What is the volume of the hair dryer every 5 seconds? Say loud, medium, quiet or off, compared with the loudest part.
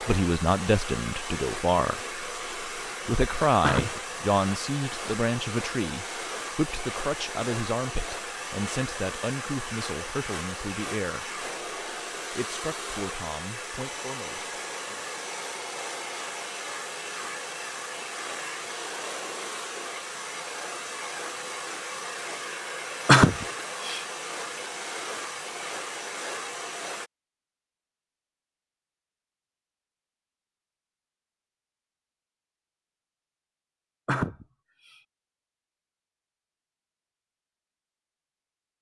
loud, loud, loud, loud, loud, loud, off, off.